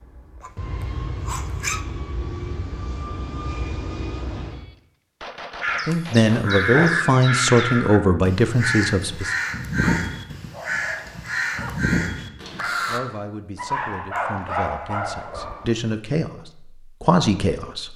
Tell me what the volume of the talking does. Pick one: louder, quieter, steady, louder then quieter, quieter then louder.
quieter then louder.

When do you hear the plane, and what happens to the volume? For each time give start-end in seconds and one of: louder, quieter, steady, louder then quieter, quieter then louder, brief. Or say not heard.
0.0-4.7 steady.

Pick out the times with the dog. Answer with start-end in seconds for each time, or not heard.
0.4-1.9, 5.9-7.1, 9.8-11.8, 13.6-15.9.